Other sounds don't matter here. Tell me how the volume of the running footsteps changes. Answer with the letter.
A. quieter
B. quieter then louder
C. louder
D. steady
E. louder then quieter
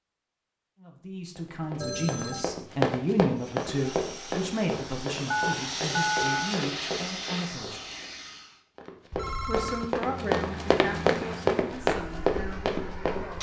B.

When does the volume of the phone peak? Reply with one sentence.
The volume of the phone peaks at 6 seconds.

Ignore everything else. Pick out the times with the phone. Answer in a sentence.
You can hear the phone from 1.8 to 2.5 s, from 5.3 to 6.5 s and from 9.1 to 9.9 s.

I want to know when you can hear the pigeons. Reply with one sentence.
You can't hear the pigeons here.